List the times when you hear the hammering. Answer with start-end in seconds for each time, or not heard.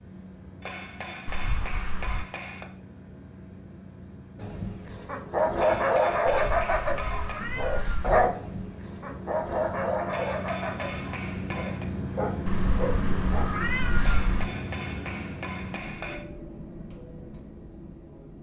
0.6-2.6, 5.5-7.5, 10.1-11.9, 14.0-16.2.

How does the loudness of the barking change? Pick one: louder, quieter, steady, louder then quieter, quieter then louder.
quieter.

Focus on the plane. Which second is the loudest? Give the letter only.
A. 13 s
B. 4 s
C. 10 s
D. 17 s
A.